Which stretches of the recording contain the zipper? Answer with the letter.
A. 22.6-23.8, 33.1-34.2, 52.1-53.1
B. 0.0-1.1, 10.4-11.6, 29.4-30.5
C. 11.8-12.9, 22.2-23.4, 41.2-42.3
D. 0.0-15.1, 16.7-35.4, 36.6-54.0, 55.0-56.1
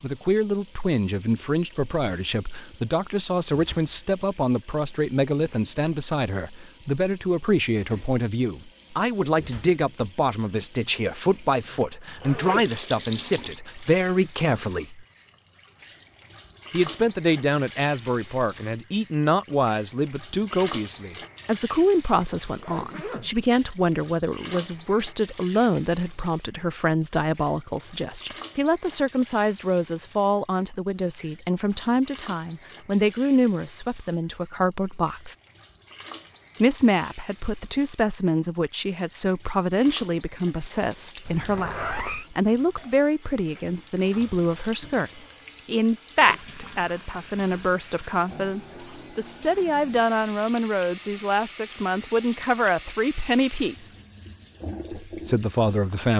C.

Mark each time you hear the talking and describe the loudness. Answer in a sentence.
The talking can be heard from 0.0 to 15.1 s, at a steady volume; from 16.7 to 35.4 s, at a steady volume; from 36.6 to 54.0 s, at a steady volume; and briefly from 55.0 to 56.1 s.